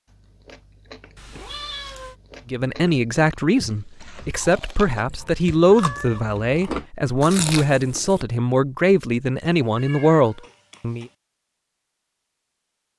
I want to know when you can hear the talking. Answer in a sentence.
The talking can be heard from 2.5 to 11.1 s.